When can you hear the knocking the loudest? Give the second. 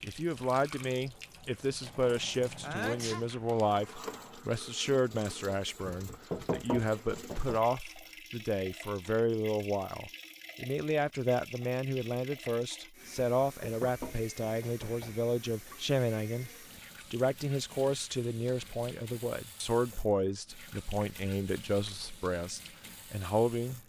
7 s.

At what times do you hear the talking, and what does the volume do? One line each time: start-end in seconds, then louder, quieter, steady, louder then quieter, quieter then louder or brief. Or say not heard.
0.0-16.5 steady
17.1-23.8 steady.